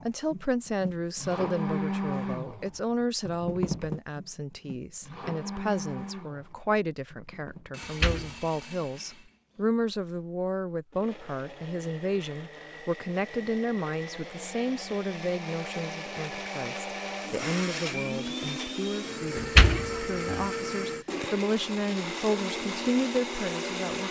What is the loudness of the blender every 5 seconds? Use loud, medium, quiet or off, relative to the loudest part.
loud, medium, medium, loud, loud.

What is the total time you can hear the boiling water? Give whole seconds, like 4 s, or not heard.
not heard.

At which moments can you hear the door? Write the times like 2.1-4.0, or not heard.
7.8-8.3, 19.4-20.4.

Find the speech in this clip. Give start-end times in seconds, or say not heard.
0.0-24.0.